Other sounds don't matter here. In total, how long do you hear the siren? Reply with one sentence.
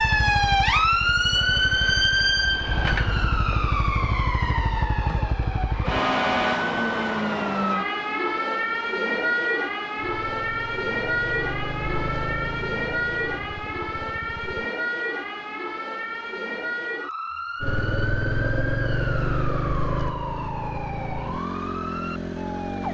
The siren can be heard for 23 seconds in total.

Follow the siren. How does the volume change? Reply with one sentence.
The loudness of the siren goes down.